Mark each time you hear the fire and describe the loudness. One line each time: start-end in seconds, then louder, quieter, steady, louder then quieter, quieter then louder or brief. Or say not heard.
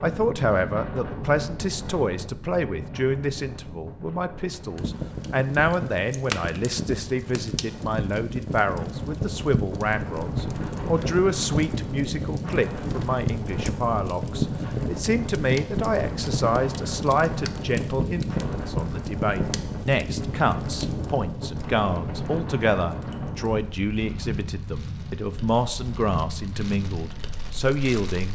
4.8-28.3 quieter.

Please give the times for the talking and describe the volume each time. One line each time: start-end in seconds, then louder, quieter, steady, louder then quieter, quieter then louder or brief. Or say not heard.
0.0-28.3 steady.